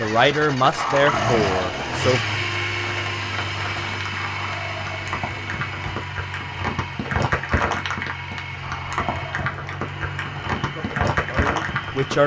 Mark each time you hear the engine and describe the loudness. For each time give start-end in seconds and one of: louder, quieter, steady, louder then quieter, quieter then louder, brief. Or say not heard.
0.0-12.2 quieter.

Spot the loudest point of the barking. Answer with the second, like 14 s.
1 s.